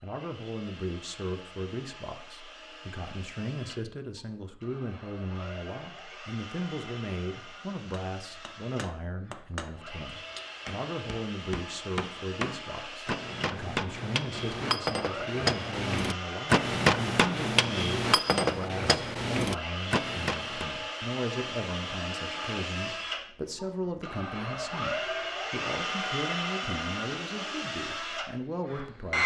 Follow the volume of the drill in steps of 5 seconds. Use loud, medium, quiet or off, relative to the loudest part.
quiet, quiet, medium, medium, loud, loud.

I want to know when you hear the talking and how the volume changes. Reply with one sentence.
The talking can be heard from 0.0 to 29.2 s, at a steady volume.